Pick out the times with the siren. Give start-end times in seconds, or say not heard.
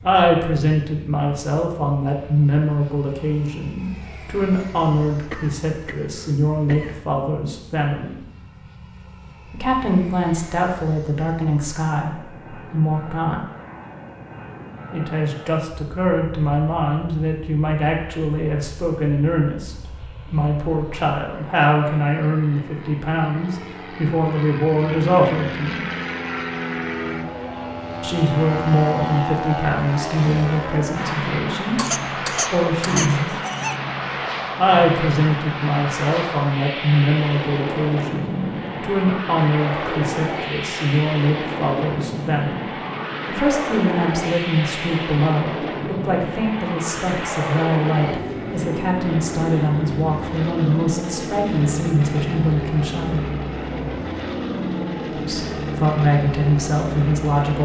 not heard.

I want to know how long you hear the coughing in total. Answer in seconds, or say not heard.
4 s.